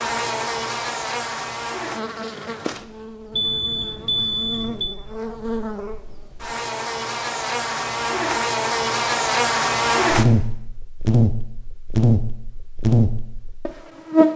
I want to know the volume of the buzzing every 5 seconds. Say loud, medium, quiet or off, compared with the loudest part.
medium, loud, loud.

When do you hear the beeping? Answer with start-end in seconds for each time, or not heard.
3.3-5.0.